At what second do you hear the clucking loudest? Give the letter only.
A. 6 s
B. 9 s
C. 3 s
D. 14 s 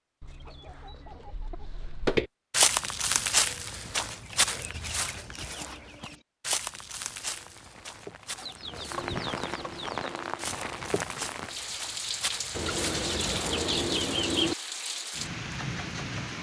D.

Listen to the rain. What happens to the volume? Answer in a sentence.
The volume of the rain goes up.